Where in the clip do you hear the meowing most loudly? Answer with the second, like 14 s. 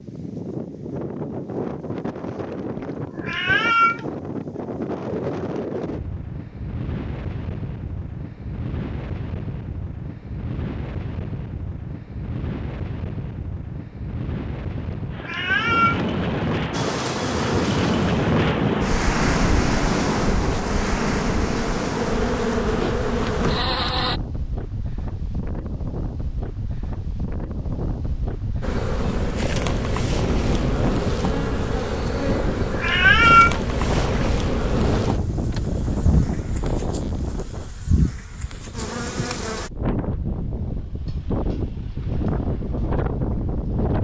33 s.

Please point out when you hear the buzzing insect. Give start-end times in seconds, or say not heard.
16.7-24.2, 28.6-39.7.